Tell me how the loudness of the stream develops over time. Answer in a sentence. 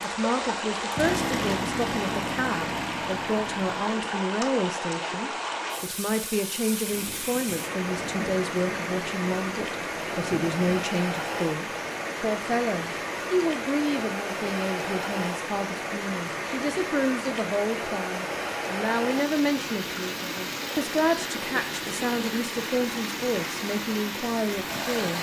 The loudness of the stream stays about the same.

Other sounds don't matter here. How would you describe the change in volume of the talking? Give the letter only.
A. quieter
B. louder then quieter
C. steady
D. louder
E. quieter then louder
C.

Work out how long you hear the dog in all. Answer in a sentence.
The dog can't be heard in this clip.